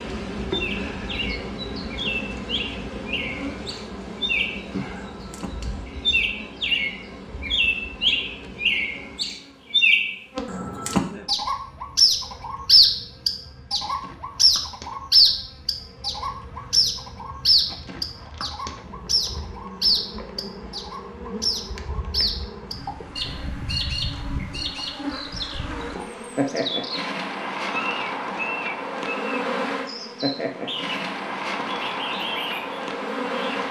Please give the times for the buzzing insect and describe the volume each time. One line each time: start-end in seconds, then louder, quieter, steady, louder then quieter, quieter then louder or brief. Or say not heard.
0.0-33.6 quieter then louder.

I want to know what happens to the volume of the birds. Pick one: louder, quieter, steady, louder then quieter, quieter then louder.
louder then quieter.